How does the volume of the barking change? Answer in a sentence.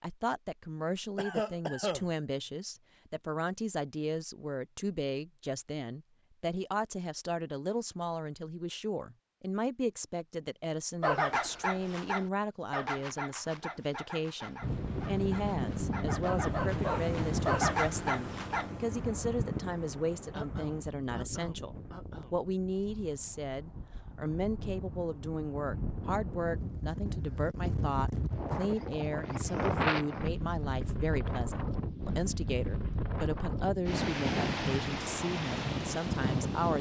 The loudness of the barking goes down, then up.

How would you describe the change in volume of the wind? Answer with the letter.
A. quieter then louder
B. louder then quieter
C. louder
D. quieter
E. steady
A.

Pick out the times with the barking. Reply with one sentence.
You can hear the barking from 11.0 to 18.7 s.